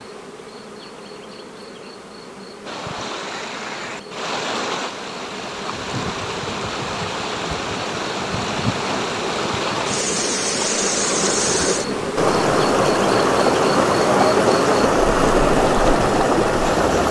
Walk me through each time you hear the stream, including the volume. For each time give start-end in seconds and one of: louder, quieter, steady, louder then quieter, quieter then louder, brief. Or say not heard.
2.6-17.0 louder.